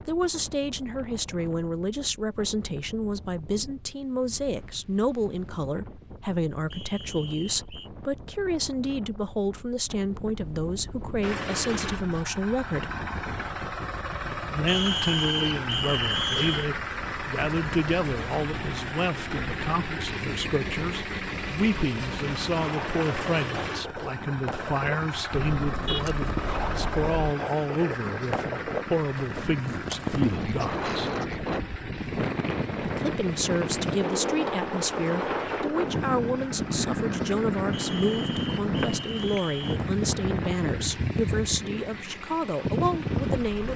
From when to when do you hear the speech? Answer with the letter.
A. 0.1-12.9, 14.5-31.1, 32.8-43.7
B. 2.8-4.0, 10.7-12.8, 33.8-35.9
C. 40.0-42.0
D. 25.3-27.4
A.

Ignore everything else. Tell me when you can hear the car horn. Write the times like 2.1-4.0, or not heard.
25.3-27.4.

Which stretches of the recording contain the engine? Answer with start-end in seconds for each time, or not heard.
11.2-43.7.